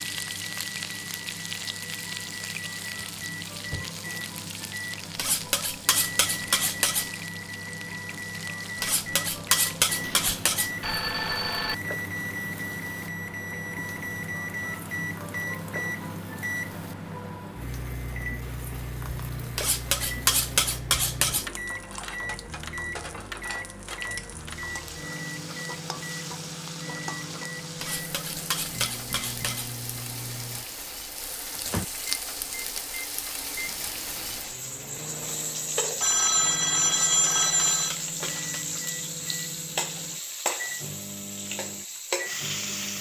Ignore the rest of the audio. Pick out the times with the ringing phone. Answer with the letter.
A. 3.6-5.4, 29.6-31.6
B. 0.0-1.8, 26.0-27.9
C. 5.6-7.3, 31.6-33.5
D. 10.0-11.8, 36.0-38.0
D.